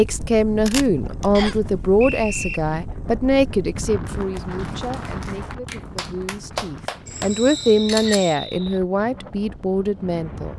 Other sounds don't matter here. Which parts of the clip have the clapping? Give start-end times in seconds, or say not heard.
4.0-7.5.